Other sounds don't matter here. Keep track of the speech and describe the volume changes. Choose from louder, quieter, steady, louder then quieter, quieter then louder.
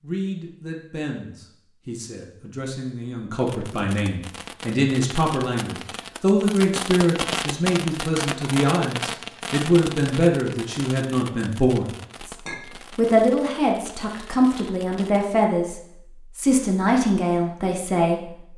louder.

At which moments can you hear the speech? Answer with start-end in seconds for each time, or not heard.
0.0-12.3, 12.9-18.5.